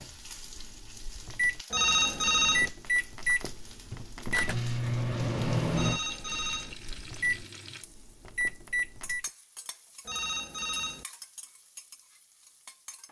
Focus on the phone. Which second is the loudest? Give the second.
2 s.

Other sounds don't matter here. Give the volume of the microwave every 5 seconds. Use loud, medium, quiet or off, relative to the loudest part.
loud, loud, off.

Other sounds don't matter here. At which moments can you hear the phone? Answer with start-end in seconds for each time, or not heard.
1.7-2.7, 5.8-6.8, 10.1-11.1.